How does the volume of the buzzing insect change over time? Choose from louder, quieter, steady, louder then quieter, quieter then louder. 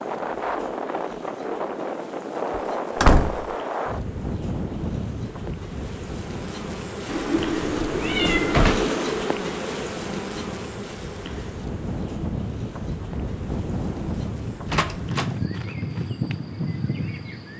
louder then quieter.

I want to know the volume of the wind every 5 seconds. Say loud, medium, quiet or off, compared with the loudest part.
loud, medium, loud, loud.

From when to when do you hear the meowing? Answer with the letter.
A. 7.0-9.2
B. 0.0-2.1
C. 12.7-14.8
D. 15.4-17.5
A.